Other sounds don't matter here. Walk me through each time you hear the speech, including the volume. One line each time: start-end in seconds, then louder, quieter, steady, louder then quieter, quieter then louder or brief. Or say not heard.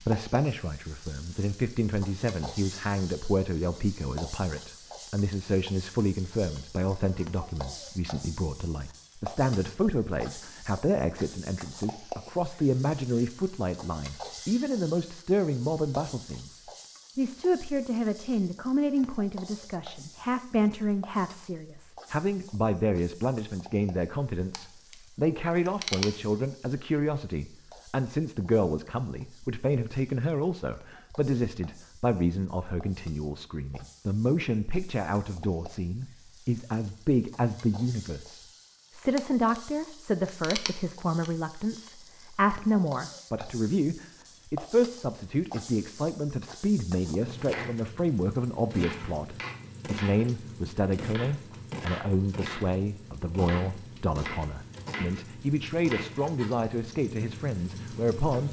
0.0-58.4 steady.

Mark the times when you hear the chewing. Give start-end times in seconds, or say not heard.
24.5-24.9, 25.6-26.2, 39.1-39.6, 40.2-41.3.